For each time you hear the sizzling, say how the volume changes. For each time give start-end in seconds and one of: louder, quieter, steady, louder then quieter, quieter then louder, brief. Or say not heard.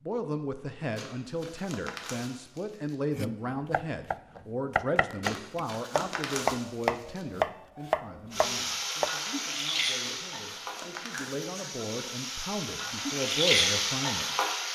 8.3-14.7 quieter then louder.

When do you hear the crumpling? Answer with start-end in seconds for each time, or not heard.
0.9-3.0, 5.2-7.2, 10.0-11.5.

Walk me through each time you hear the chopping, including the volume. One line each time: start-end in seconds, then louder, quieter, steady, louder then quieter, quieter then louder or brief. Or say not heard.
3.1-9.1 louder.